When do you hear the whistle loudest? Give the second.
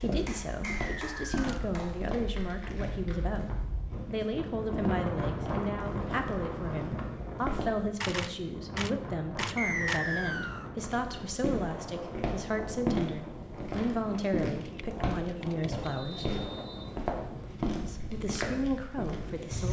10 s.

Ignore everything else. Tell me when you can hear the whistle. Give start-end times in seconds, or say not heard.
0.7-1.5, 9.6-10.7, 15.8-16.9.